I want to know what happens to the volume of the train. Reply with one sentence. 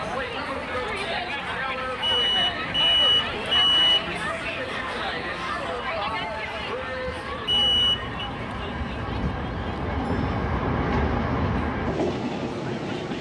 The loudness of the train goes up.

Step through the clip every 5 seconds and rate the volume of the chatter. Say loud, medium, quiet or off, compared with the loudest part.
loud, loud, quiet.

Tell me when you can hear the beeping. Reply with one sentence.
You can hear the beeping from 2.0 to 4.1 s and from 7.5 to 8.3 s.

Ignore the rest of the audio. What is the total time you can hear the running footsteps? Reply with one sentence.
The running footsteps can't be heard in this clip.